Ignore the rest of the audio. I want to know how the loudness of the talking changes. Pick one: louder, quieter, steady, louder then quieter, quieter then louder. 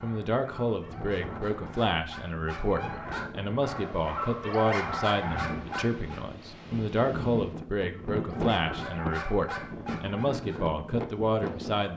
steady.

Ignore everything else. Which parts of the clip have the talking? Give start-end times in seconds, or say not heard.
0.0-11.9.